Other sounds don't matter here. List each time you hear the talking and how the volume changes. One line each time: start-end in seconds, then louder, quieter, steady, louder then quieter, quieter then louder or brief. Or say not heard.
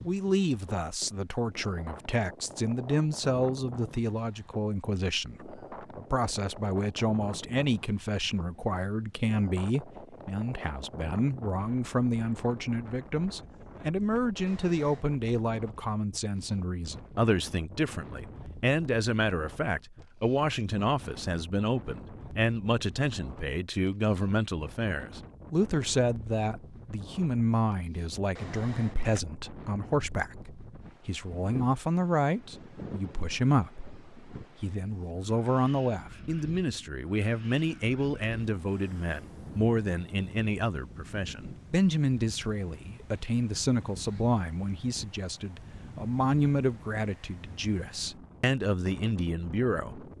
0.0-50.0 steady.